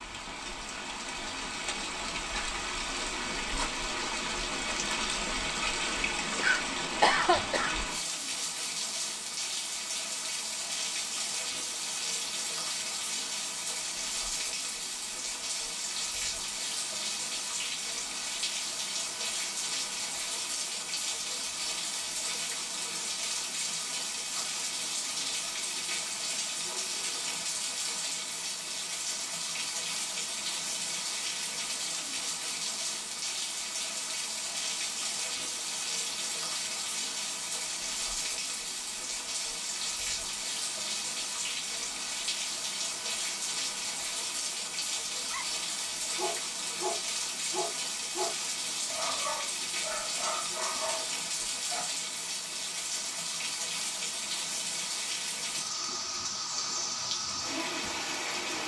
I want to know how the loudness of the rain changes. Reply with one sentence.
The loudness of the rain stays about the same.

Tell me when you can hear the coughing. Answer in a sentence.
The coughing can be heard from 6.3 to 7.7 s.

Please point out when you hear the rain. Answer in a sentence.
You can hear the rain from 0.0 to 58.6 s.